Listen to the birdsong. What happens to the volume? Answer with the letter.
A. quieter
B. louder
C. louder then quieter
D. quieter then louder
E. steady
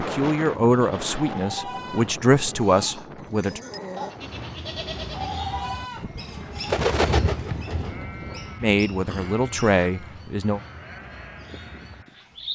C.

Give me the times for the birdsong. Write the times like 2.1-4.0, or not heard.
4.0-12.5.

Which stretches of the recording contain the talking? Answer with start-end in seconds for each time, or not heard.
0.0-3.6, 8.6-10.6.